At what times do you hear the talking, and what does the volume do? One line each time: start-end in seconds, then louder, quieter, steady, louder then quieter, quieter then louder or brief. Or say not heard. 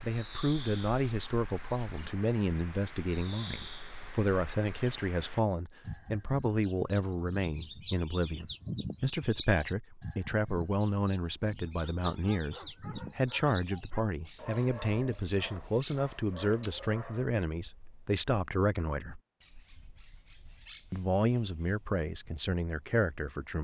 0.0-19.2 steady
20.9-23.5 brief.